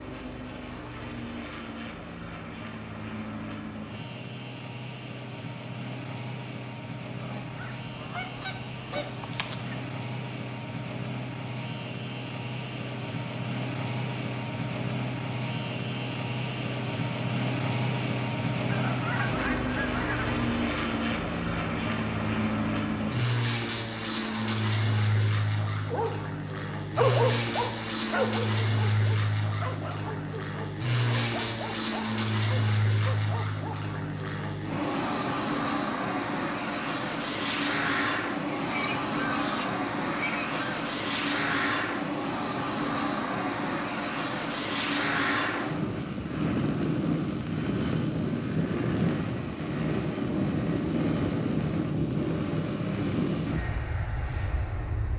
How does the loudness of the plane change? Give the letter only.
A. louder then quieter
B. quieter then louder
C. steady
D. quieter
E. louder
E.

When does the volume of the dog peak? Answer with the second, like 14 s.
27 s.